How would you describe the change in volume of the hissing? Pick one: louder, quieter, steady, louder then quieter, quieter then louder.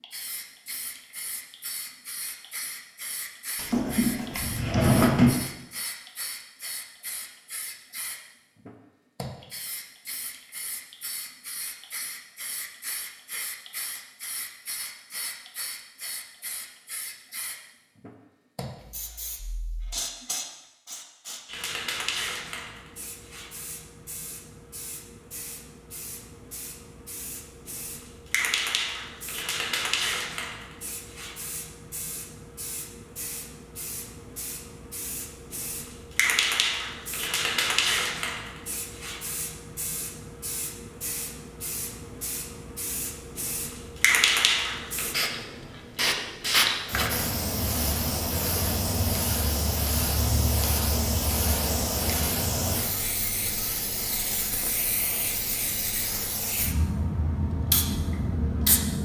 louder.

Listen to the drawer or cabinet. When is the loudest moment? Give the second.
5 s.